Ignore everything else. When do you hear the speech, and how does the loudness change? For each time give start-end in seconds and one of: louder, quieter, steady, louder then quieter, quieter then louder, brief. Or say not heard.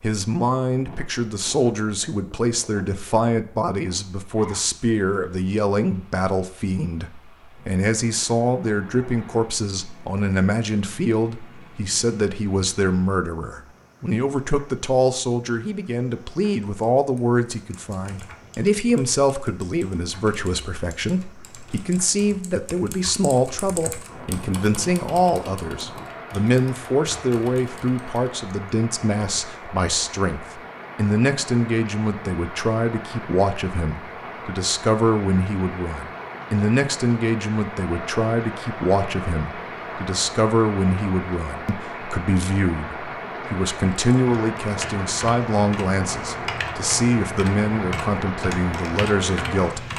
0.0-49.9 steady.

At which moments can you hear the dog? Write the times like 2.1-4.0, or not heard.
not heard.